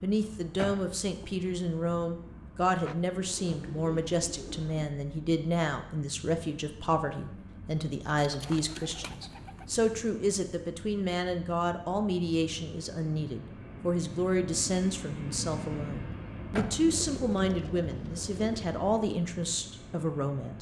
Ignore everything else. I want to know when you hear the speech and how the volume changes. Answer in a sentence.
The speech can be heard from 0.0 to 20.5 s, at a steady volume.